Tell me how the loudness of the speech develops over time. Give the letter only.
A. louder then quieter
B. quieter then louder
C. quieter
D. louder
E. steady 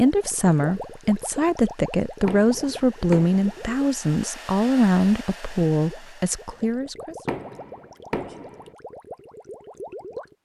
E.